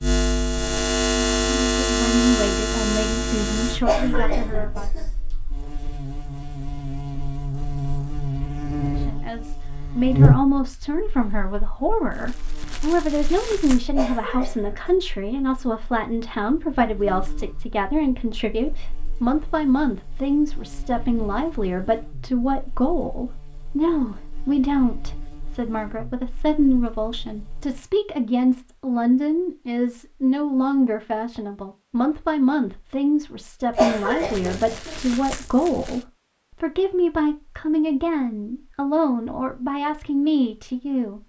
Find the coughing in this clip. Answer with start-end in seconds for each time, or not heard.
3.9-5.2, 13.9-14.9, 33.8-35.0.